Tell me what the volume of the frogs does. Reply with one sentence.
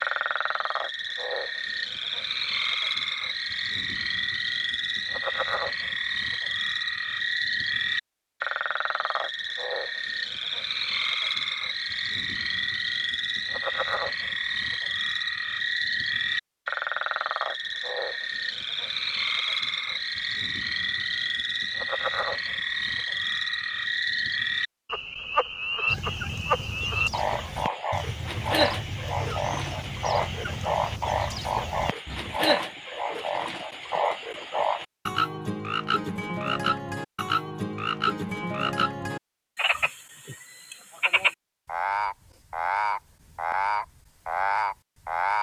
The loudness of the frogs stays about the same.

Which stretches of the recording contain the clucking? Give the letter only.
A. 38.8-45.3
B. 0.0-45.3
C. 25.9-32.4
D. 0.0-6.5
C.